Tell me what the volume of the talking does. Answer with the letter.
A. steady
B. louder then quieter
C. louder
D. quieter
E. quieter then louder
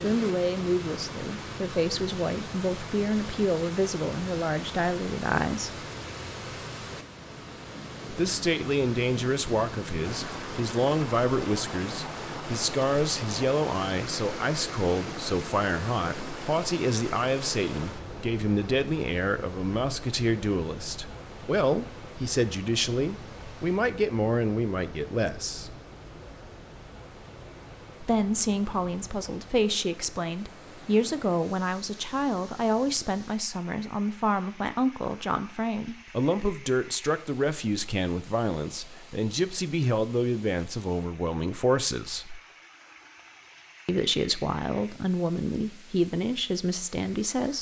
A.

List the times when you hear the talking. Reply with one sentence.
You can hear the talking from 0.0 to 5.7 s, from 8.1 to 25.8 s, from 28.0 to 42.4 s and from 43.9 to 47.5 s.